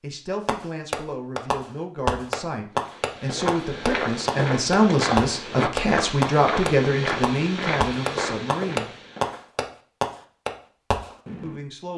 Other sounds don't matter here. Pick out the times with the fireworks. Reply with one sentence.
The fireworks can be heard from 0.5 to 11.6 s.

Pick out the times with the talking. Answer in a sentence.
You can hear the talking from 0.0 to 8.9 s and from 11.4 to 11.9 s.